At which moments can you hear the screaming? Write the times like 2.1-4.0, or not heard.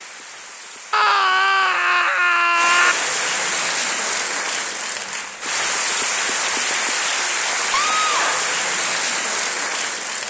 0.9-3.0, 7.7-8.5.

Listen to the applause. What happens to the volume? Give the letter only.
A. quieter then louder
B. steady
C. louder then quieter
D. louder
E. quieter
D.